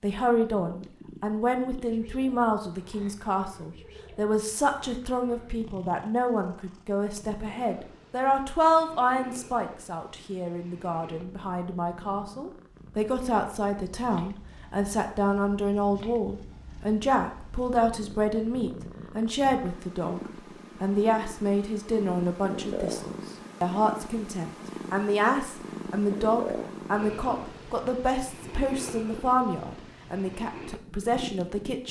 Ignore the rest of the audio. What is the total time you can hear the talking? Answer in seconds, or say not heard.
31 s.